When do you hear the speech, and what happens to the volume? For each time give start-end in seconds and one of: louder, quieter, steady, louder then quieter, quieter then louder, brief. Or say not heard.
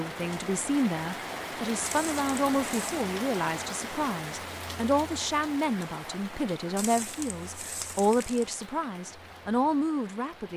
0.0-10.5 steady.